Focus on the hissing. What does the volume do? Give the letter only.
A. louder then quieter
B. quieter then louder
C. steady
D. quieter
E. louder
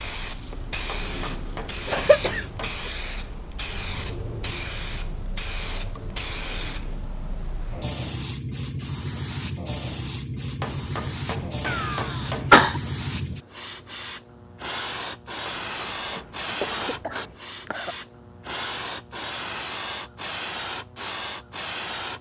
C.